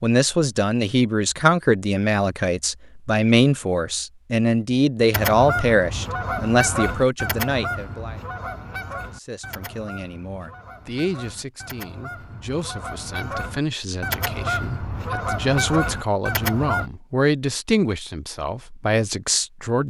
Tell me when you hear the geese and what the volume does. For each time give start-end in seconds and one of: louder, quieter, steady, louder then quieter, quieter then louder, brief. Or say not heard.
5.1-16.9 quieter then louder.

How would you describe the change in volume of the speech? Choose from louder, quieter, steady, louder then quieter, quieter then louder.
quieter then louder.